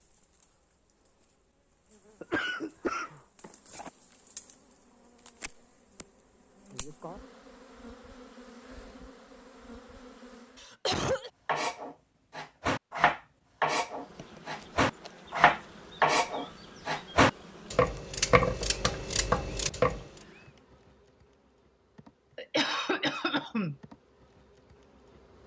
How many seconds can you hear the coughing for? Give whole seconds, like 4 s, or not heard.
3 s.